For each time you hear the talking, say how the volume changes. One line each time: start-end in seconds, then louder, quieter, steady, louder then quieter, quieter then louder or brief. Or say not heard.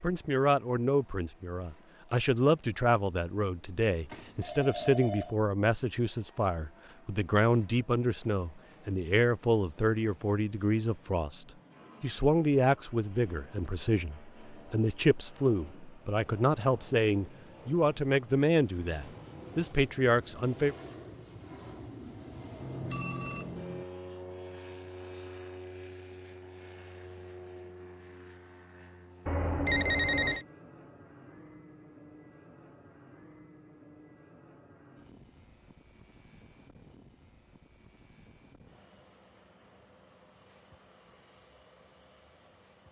0.0-20.8 steady.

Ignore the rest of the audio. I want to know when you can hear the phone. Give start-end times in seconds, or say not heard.
4.0-5.3, 22.6-23.9, 29.2-30.4.